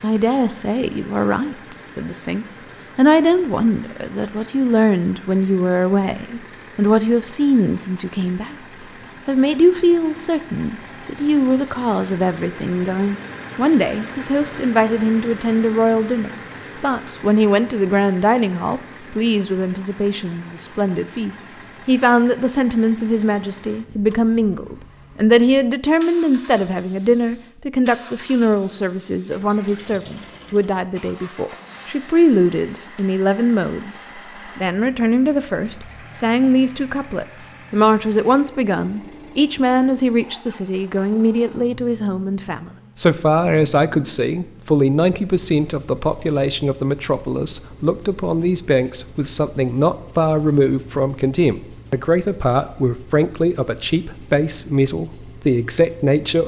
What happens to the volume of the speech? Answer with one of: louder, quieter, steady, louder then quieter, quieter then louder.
steady.